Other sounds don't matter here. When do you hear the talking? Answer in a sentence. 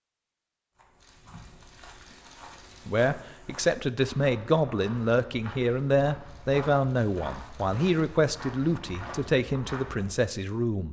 You can hear the talking from 2.9 to 10.8 s.